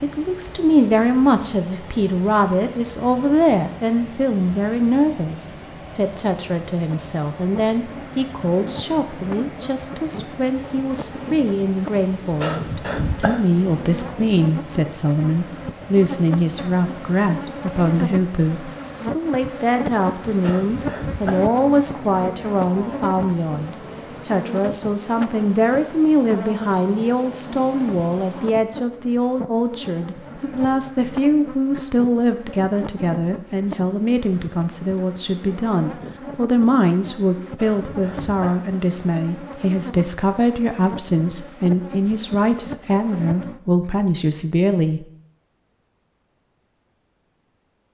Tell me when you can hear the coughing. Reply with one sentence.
The coughing can be heard from 12.4 to 13.4 s, from 20.4 to 21.5 s and from 37.5 to 38.6 s.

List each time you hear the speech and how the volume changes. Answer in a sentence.
You can hear the speech from 0.0 to 45.0 s, at a steady volume.